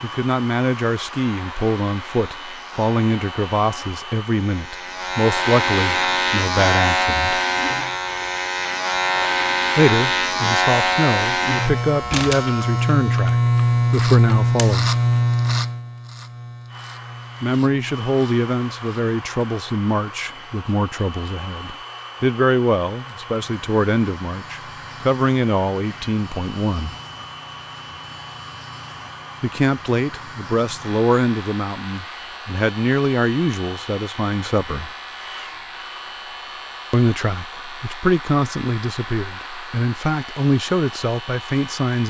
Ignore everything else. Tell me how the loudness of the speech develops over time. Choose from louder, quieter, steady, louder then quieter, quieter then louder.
steady.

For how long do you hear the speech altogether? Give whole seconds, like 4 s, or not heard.
33 s.